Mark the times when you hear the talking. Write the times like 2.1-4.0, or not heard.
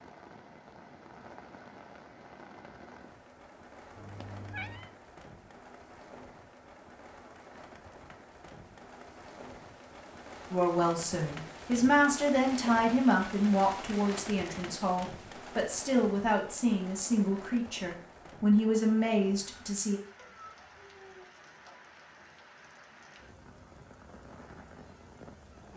10.5-20.0.